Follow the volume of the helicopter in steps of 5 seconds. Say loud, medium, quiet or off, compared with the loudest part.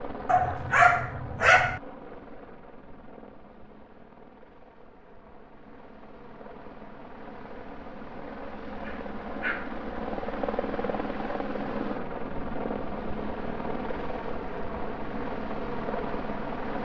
medium, medium, loud, loud.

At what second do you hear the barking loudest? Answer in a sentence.
The loudest moment of the barking is at 1 second.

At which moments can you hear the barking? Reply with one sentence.
You can hear the barking from 0.2 to 1.8 s and from 8.8 to 9.8 s.